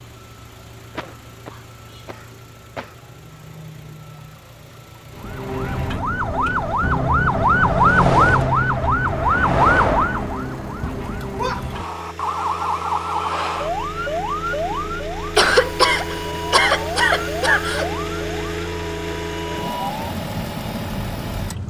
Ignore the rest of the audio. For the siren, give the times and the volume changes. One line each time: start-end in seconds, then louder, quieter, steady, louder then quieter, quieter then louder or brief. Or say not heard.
5.2-21.6 quieter.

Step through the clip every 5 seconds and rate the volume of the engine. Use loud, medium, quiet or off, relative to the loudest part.
quiet, quiet, medium, loud, loud.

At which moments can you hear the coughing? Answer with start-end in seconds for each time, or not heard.
0.9-3.0, 11.3-11.8, 15.3-17.9.